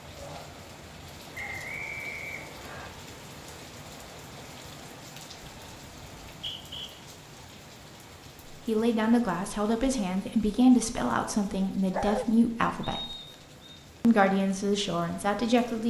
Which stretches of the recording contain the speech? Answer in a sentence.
You can hear the speech from 8.4 to 13.2 s and from 14.0 to 15.8 s.